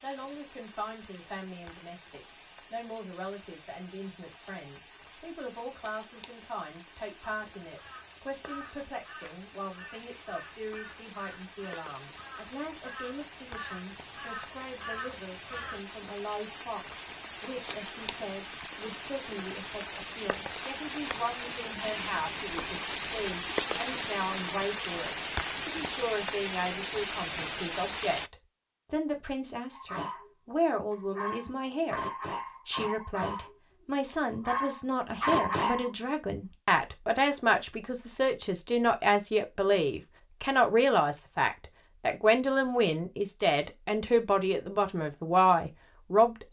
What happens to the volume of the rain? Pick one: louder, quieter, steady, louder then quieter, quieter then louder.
louder.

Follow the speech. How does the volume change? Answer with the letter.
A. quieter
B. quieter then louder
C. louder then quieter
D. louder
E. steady
D.